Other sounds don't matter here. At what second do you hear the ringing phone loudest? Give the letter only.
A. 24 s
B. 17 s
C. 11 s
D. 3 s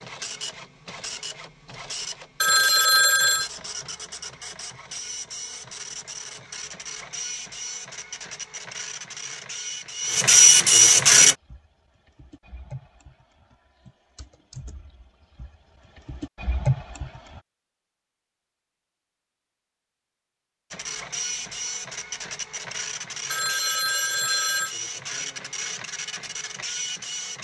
D.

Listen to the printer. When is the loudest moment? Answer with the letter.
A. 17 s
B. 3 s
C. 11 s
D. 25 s
C.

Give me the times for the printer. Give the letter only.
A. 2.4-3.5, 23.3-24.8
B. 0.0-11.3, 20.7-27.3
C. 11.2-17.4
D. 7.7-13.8
B.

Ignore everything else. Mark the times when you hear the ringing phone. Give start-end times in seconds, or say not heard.
2.4-3.5, 23.3-24.8.